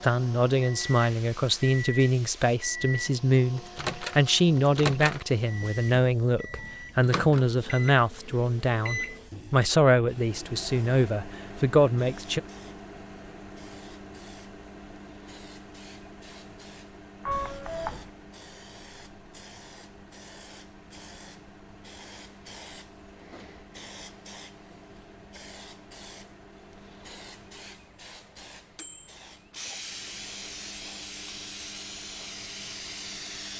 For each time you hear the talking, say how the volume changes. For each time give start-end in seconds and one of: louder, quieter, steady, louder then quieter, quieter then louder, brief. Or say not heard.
0.0-12.4 steady.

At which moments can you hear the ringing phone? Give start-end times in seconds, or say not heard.
17.2-18.1.